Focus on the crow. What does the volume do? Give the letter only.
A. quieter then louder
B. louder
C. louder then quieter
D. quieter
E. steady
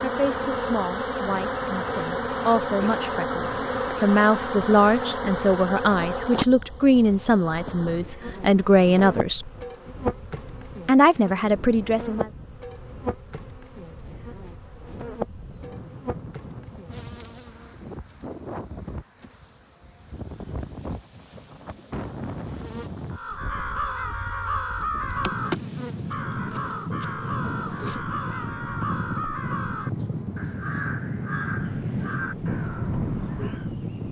D.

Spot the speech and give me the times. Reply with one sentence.
The speech can be heard from 0.0 to 9.5 s and from 10.8 to 12.3 s.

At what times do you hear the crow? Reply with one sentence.
The crow can be heard from 23.1 to 33.7 s.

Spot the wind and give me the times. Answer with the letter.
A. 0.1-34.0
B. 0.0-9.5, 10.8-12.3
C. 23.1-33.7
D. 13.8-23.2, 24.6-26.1
A.